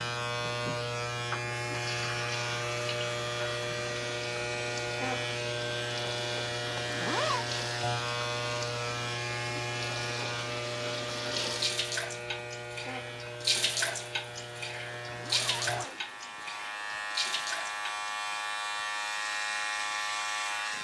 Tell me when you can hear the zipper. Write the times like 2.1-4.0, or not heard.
6.7-7.5, 15.0-16.6.